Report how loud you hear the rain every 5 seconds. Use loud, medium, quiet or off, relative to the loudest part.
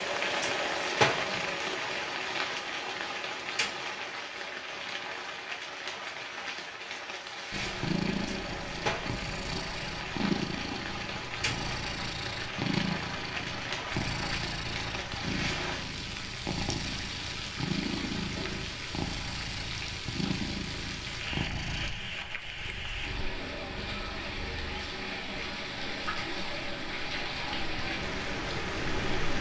loud, medium, medium, medium, medium, loud.